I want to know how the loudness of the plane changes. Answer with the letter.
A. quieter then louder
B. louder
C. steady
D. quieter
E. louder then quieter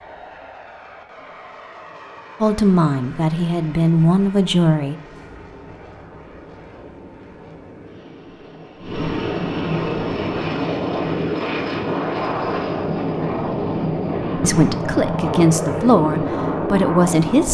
B.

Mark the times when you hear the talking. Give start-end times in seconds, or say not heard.
2.4-5.0, 14.4-17.5.